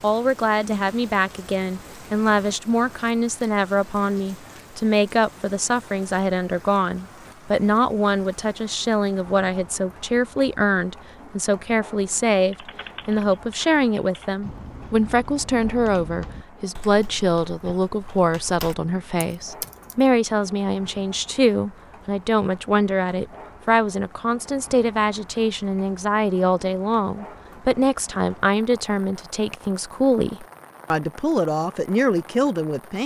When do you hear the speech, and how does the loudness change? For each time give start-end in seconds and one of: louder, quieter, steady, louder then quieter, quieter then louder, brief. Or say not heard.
0.0-33.0 steady.